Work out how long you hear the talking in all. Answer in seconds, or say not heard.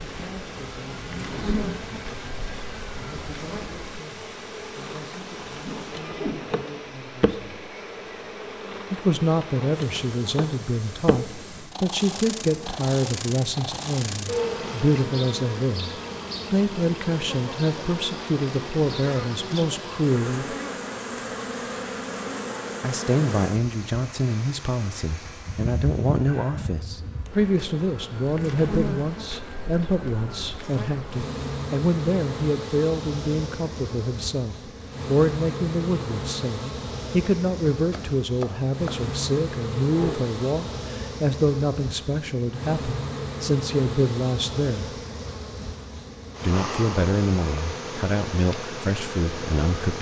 45 s.